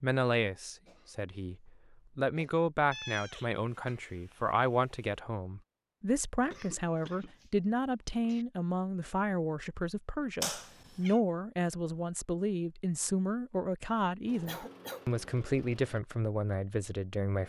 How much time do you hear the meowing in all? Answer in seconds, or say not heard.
3 s.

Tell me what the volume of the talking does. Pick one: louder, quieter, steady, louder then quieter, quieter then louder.
steady.